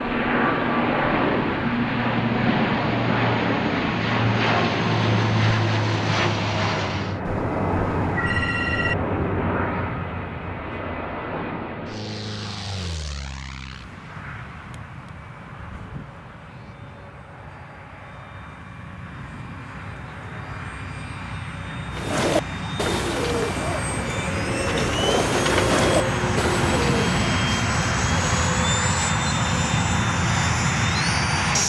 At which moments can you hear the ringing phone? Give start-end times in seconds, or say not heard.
7.2-8.9.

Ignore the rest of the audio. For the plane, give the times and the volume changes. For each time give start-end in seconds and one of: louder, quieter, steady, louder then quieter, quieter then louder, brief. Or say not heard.
0.0-31.6 quieter then louder.